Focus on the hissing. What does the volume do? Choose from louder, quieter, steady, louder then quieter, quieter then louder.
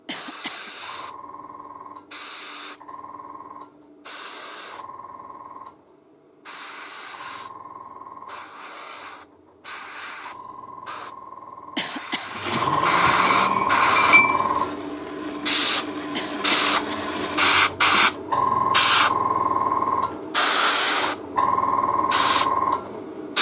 louder.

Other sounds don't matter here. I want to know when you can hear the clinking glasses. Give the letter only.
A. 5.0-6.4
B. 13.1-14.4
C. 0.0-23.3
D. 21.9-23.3
B.